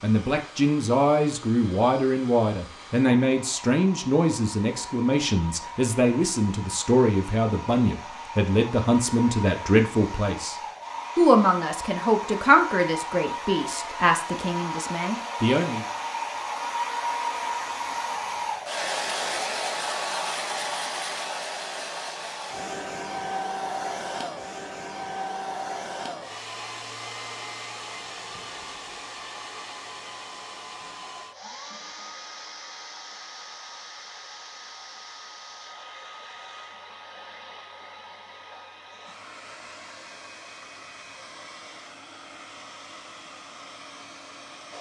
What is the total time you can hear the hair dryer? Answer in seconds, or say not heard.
45 s.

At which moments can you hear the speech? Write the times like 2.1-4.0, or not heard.
0.0-10.6, 11.2-15.8.